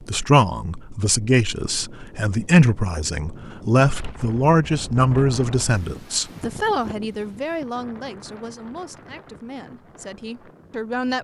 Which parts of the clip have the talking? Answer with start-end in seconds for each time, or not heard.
0.0-11.2.